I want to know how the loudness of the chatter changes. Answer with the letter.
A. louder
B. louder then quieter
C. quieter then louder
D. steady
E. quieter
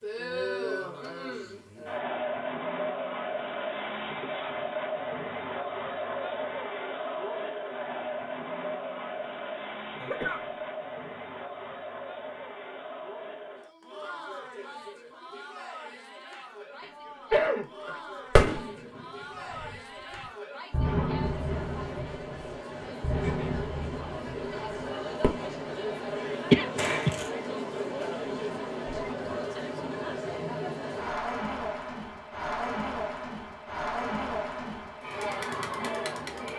C.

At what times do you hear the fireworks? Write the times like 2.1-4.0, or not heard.
18.4-25.5, 26.8-27.3.